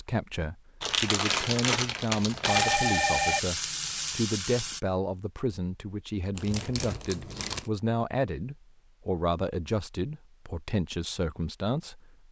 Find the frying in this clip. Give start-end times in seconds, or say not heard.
2.5-4.8.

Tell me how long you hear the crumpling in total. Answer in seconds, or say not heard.
3 s.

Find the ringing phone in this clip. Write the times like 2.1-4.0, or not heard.
2.4-3.5.